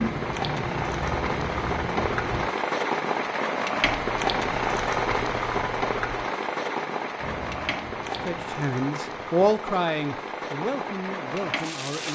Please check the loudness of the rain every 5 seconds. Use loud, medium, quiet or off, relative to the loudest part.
loud, loud, medium.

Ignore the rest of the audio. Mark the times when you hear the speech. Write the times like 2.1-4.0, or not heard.
8.2-12.0.